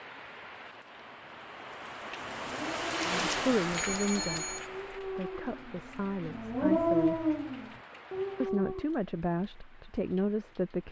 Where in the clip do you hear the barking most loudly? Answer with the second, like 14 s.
7 s.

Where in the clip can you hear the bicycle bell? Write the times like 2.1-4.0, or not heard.
3.7-4.7.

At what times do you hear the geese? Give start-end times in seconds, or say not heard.
not heard.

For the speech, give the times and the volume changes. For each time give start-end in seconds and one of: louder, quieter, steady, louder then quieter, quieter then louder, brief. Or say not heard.
3.0-7.2 quieter
8.4-10.8 brief.